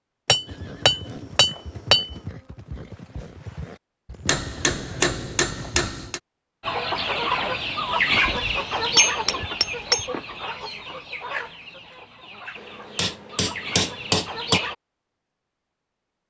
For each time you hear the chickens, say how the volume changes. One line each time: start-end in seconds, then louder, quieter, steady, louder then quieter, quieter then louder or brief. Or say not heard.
6.6-14.8 quieter then louder.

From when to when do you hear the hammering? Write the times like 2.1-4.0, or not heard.
0.2-2.1, 4.2-6.2, 8.2-10.1, 12.9-14.6.